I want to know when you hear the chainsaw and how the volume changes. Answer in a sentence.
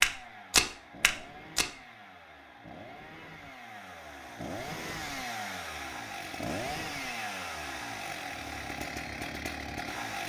The chainsaw can be heard from 0.0 to 10.2 s, getting louder.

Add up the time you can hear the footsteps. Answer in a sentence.
The footsteps can be heard for 2 seconds in total.